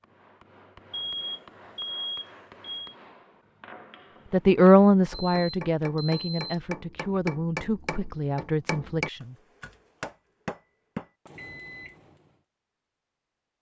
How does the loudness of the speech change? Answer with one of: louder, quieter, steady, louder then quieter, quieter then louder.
quieter.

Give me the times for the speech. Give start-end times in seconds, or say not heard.
4.3-9.3.